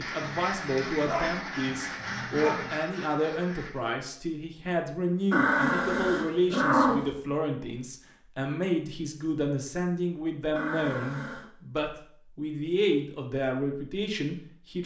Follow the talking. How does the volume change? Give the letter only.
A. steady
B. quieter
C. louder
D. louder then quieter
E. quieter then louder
A.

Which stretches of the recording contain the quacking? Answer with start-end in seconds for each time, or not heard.
0.0-4.0.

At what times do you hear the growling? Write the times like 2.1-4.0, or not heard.
0.2-2.8, 5.3-7.1, 10.6-11.4.